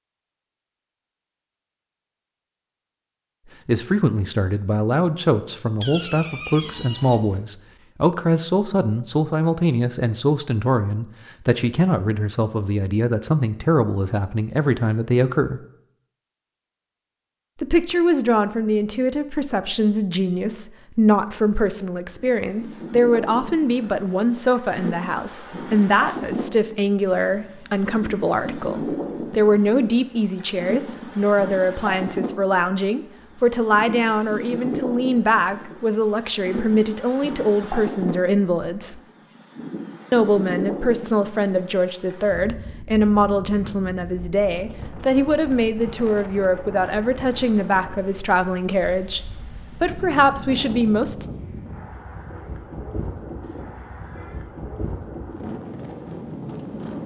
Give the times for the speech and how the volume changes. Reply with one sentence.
You can hear the speech from 3.6 to 15.6 s, at a steady volume; from 17.6 to 39.0 s, at a steady volume; and from 40.1 to 51.3 s, at a steady volume.